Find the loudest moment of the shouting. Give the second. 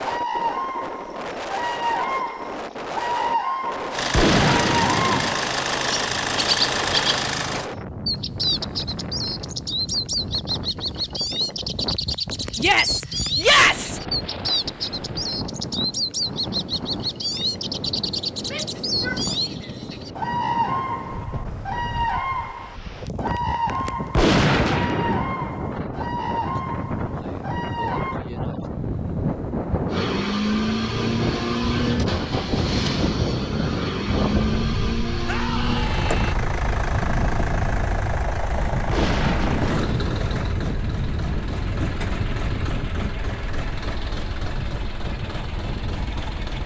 14 s.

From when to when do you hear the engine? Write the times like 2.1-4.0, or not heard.
3.9-7.7, 29.9-46.6.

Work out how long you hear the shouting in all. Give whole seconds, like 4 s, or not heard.
4 s.